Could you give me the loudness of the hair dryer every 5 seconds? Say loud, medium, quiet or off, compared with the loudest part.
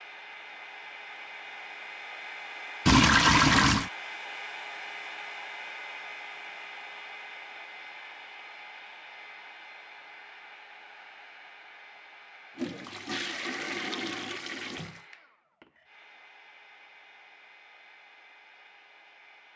loud, loud, medium, quiet.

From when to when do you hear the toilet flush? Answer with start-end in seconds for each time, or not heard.
2.9-3.9, 12.6-15.0.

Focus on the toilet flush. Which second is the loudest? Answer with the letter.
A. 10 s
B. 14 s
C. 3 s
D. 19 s
C.